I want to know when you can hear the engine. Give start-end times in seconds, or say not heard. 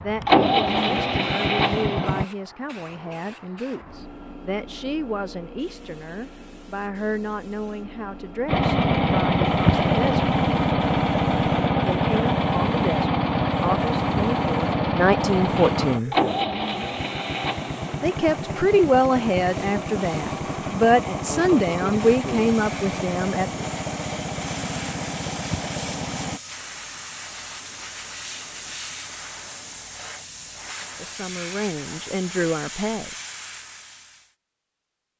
0.0-2.2, 8.4-26.4.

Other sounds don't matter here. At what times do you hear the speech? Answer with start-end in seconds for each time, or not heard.
0.0-10.3, 11.8-16.1, 18.0-23.6, 30.9-33.1.